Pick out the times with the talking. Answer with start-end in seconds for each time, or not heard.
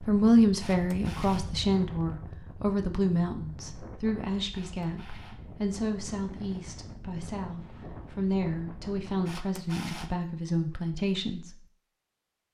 0.0-11.6.